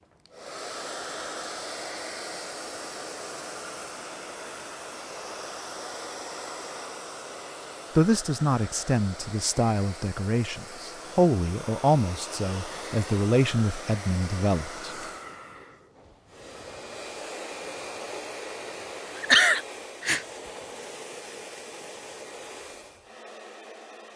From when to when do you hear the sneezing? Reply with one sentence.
You can hear the sneezing from 19.1 to 20.2 s.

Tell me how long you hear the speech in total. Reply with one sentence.
You can hear the speech for 7 seconds altogether.